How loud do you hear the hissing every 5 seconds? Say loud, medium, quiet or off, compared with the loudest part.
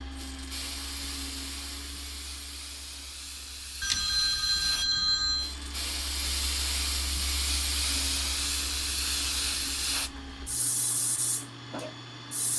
medium, loud, medium.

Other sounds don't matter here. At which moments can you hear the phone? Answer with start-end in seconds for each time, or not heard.
3.8-5.5.